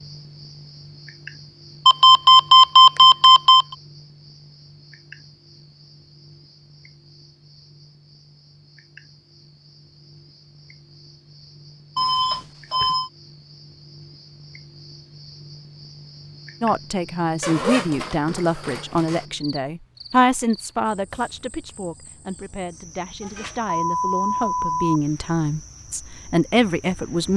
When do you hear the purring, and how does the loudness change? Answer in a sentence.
You can't hear the purring here.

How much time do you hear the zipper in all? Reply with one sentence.
The zipper can be heard for 2 seconds in total.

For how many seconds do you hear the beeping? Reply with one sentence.
You can hear the beeping for 5 seconds altogether.